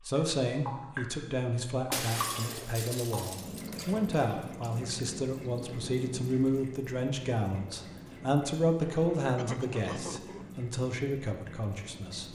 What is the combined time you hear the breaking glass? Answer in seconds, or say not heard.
2 s.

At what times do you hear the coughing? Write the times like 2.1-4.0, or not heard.
9.3-10.4.